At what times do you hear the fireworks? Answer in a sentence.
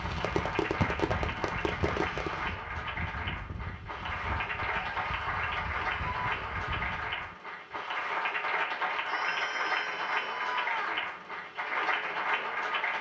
You can hear the fireworks from 0.0 to 2.4 s.